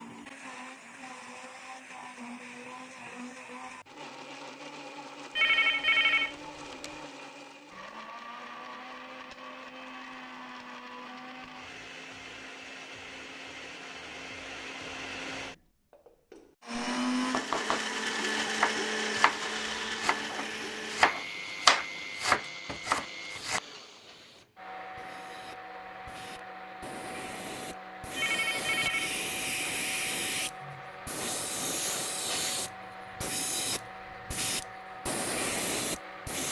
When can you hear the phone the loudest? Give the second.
6 s.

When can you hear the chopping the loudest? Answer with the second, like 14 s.
22 s.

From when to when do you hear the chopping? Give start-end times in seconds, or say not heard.
17.3-23.6.